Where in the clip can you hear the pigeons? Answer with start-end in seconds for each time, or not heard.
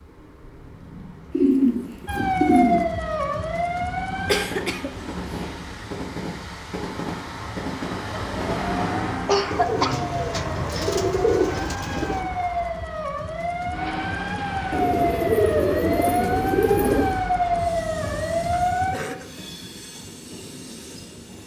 1.3-2.9, 9.5-12.3, 14.7-17.2.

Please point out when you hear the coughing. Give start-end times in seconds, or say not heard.
4.2-4.9, 9.2-9.9, 18.9-19.3.